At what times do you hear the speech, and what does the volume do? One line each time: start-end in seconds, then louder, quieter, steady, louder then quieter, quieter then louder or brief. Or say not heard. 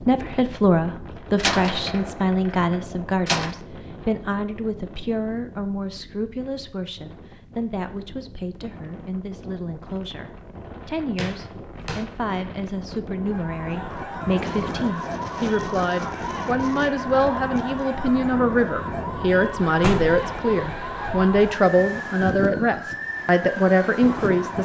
0.0-24.6 quieter then louder.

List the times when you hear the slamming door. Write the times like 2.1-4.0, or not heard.
1.4-3.5, 11.2-12.1, 19.8-20.3.